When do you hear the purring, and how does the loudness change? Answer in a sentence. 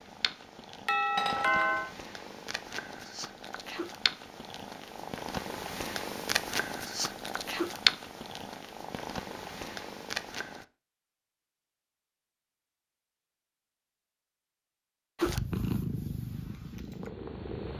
The purring can be heard from 0.0 to 10.7 s, getting louder then quieter; and briefly from 15.2 to 17.7 s.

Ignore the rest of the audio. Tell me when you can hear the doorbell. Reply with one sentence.
You can hear the doorbell from 0.8 to 1.9 s.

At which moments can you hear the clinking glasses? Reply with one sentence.
You can hear the clinking glasses from 1.1 to 1.8 s.